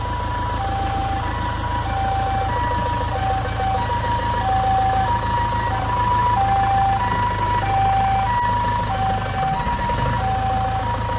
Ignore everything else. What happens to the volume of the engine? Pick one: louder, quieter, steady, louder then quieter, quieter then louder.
steady.